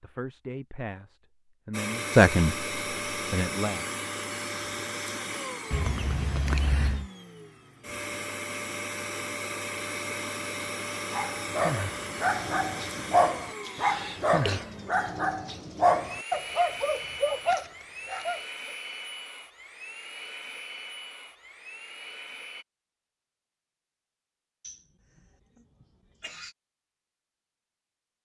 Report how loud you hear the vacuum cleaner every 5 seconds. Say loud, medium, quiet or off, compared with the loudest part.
loud, loud, loud, medium, medium, off.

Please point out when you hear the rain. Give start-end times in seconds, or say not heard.
not heard.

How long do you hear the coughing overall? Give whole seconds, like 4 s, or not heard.
4 s.